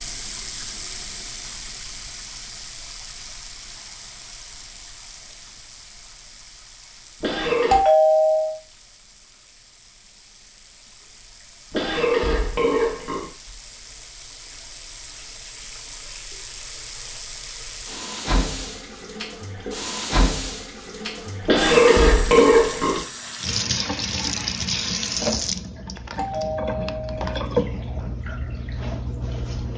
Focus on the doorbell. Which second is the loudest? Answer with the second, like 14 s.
8 s.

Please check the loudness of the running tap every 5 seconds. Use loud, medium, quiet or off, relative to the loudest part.
medium, quiet, quiet, medium, loud, loud.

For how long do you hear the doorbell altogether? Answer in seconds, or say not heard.
2 s.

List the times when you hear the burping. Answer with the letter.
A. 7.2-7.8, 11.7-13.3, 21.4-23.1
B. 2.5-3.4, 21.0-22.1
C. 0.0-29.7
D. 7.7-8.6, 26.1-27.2
A.